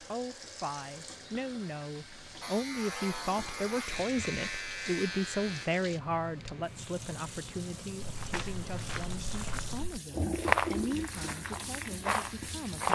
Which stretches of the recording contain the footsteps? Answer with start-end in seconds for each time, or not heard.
8.0-12.9.